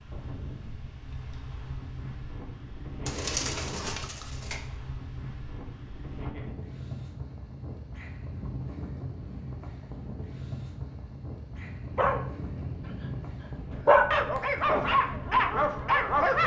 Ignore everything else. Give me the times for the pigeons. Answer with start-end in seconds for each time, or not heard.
3.0-4.6.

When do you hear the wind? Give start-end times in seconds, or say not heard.
0.0-16.4.